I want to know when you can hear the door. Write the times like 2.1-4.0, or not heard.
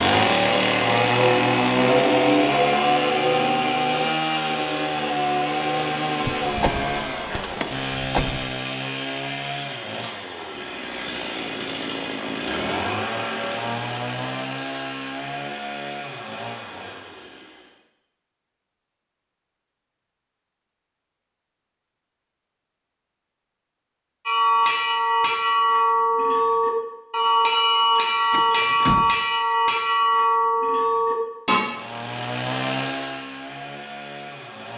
6.2-8.4, 28.3-29.6.